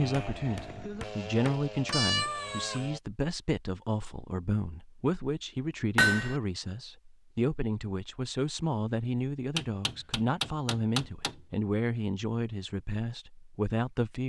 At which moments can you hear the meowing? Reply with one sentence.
You can hear the meowing from 1.9 to 2.9 s.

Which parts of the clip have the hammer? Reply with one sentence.
The hammer can be heard from 0.1 to 2.0 s, from 6.0 to 6.4 s and from 9.6 to 11.4 s.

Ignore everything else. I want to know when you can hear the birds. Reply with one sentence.
You can't hear the birds here.